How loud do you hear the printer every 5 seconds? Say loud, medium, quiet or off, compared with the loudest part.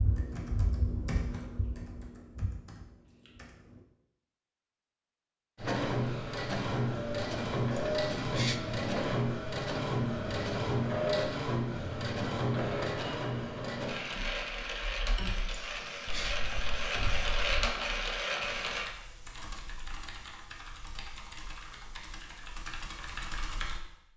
off, loud, loud, loud, off.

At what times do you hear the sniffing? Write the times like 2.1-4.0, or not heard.
7.7-8.6, 15.4-16.4.